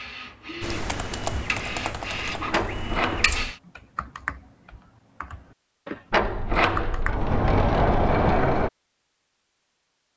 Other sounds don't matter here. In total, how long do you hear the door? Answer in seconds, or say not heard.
4 s.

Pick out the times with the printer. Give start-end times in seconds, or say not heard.
0.0-3.5.